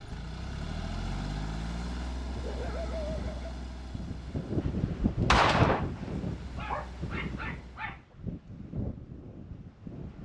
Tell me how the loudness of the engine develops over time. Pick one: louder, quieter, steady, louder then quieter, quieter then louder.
quieter.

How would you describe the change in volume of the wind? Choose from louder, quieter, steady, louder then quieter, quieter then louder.
louder then quieter.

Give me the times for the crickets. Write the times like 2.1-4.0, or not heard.
not heard.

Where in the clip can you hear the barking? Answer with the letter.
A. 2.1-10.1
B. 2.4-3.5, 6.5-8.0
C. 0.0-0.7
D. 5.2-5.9
B.